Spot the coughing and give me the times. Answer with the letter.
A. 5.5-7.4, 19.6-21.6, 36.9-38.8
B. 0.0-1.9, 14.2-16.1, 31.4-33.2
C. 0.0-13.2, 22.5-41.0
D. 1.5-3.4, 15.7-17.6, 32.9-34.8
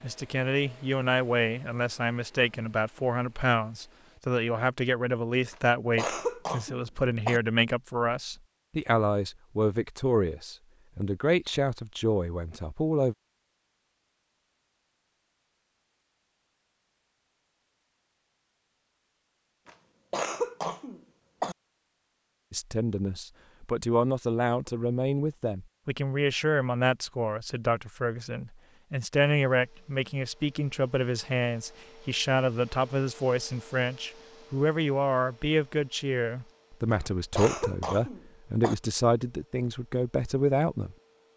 A.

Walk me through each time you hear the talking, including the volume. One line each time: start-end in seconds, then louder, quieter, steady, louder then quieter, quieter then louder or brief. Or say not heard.
0.0-13.2 steady
22.5-41.0 steady.